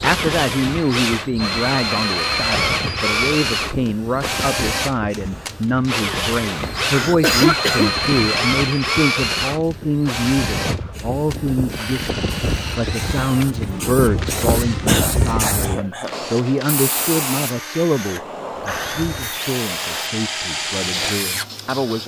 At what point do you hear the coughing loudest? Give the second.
7 s.